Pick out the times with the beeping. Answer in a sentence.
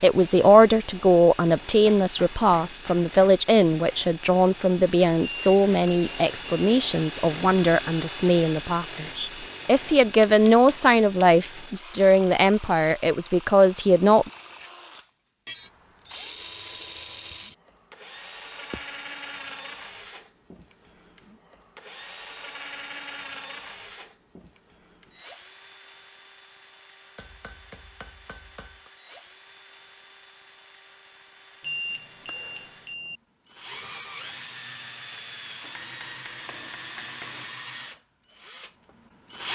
The beeping can be heard from 5.2 to 6.8 s and from 31.6 to 33.2 s.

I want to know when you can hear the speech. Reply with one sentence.
You can hear the speech from 0.0 to 14.3 s.